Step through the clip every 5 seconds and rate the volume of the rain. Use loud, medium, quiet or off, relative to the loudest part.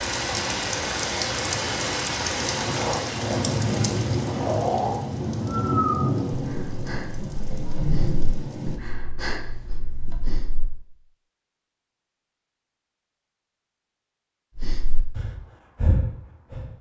loud, loud, off, off.